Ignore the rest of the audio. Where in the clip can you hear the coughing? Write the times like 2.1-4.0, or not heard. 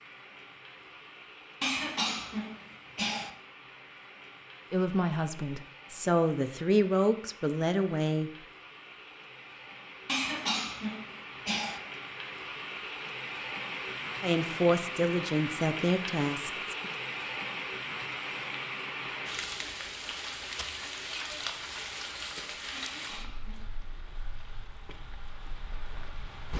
1.6-3.3, 10.1-11.8, 22.7-23.8.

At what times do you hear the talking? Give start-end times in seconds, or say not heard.
4.7-8.3, 14.2-16.9.